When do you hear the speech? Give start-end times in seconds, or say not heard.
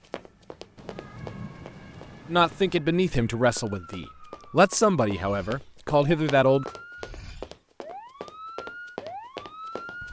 2.3-6.7.